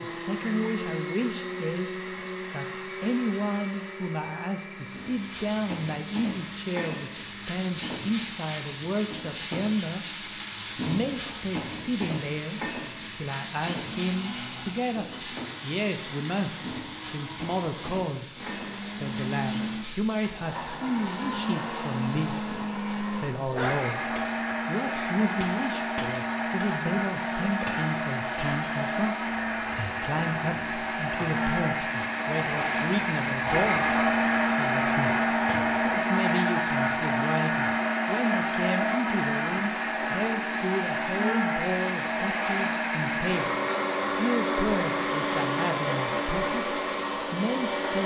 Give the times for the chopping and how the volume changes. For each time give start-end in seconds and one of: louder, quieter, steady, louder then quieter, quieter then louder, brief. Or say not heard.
not heard.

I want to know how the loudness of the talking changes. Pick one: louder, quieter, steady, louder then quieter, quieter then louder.
steady.